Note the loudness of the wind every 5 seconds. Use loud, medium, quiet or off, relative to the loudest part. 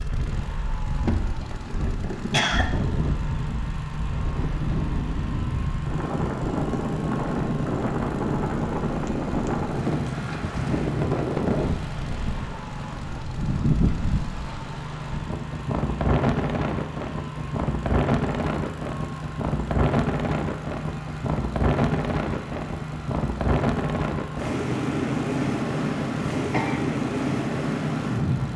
medium, loud, loud, loud, loud, loud.